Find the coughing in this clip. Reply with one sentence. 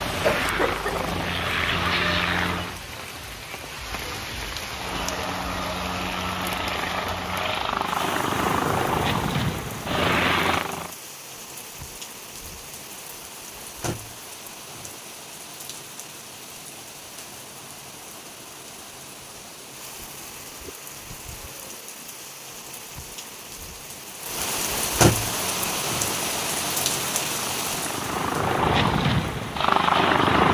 The coughing can be heard from 0.2 to 1.1 s.